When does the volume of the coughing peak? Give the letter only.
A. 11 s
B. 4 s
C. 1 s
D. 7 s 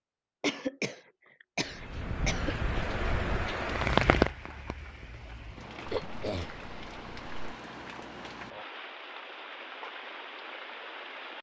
C.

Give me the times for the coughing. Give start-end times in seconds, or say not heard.
0.4-2.5, 5.8-7.5.